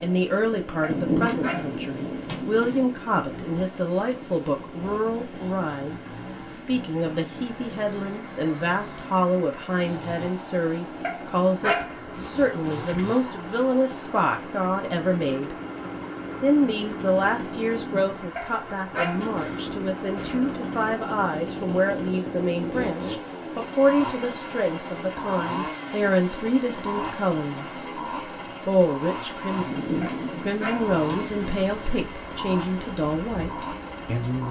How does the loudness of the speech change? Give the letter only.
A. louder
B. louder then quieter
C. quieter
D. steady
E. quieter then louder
D.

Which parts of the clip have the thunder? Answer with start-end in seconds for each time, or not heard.
0.8-2.9, 29.6-31.6.